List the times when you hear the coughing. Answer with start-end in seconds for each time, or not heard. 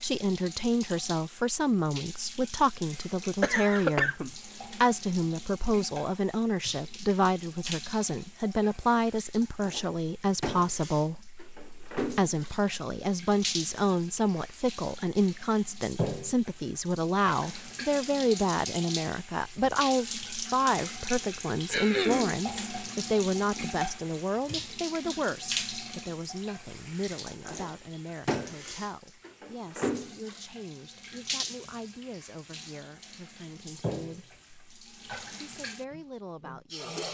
3.4-4.3, 21.7-22.4.